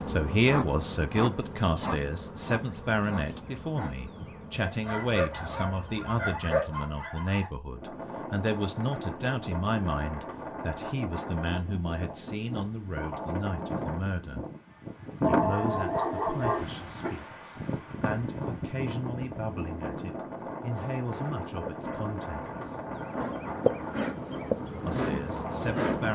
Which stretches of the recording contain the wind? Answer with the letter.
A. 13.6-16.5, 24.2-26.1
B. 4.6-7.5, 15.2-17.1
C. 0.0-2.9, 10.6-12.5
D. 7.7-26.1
D.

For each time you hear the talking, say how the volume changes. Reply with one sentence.
You can hear the talking from 0.1 to 14.4 s, getting quieter; from 15.2 to 22.8 s, at a steady volume; and briefly from 24.9 to 26.1 s.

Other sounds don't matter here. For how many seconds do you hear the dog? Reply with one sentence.
You can hear the dog for 5 seconds altogether.